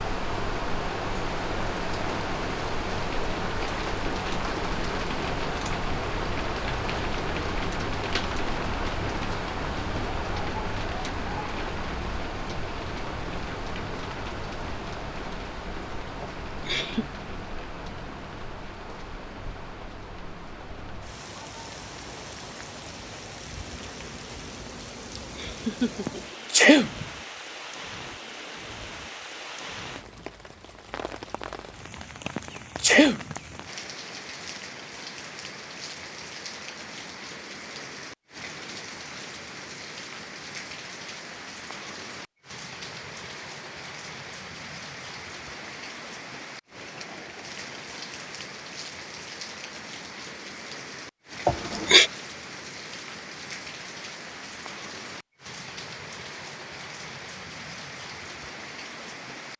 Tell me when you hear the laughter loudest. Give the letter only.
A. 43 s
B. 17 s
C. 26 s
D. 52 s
D.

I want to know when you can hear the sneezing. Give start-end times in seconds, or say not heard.
26.1-27.1, 32.4-33.4.